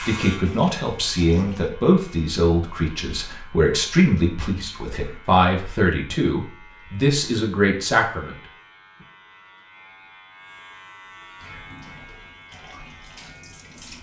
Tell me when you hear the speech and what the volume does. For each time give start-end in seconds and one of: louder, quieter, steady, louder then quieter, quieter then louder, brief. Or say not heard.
0.0-8.3 steady.